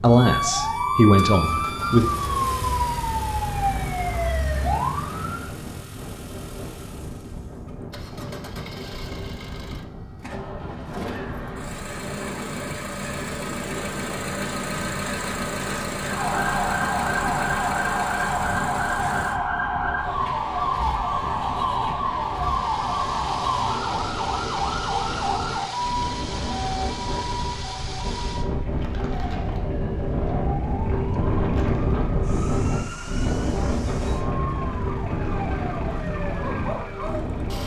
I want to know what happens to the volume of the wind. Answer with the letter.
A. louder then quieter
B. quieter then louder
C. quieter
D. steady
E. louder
E.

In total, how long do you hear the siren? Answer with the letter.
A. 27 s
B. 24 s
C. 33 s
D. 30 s
A.